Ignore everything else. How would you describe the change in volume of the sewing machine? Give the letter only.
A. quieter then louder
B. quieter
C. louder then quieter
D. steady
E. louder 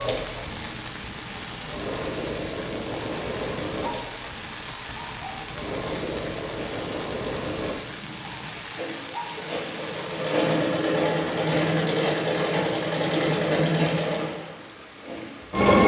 E.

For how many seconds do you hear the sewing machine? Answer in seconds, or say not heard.
16 s.